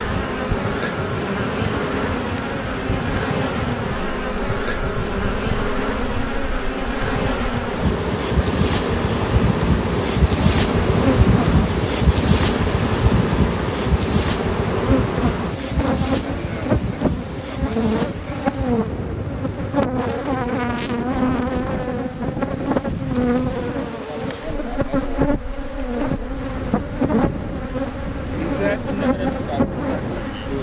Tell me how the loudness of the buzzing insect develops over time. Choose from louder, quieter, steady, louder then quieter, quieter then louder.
steady.